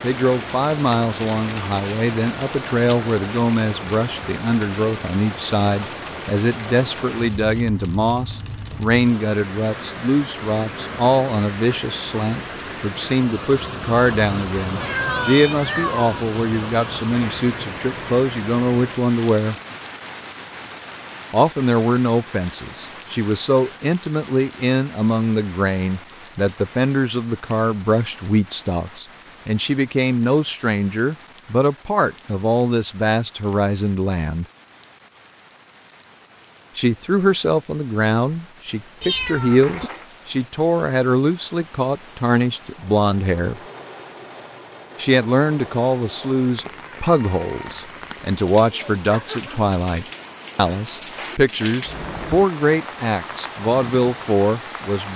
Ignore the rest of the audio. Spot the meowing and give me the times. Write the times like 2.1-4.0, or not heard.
14.8-16.1, 39.0-39.9.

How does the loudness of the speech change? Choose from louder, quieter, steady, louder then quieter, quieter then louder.
steady.